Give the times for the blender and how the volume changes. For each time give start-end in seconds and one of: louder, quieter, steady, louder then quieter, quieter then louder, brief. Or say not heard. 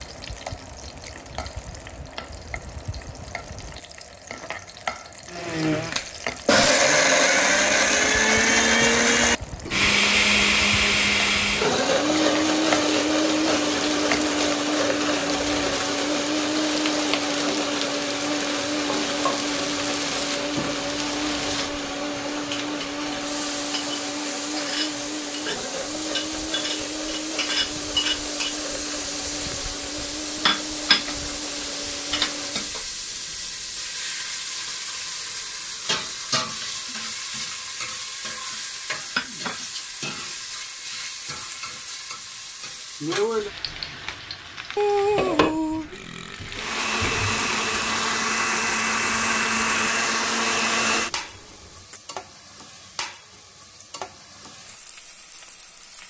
5.3-32.8 quieter
46.5-52.0 steady.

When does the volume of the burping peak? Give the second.
45 s.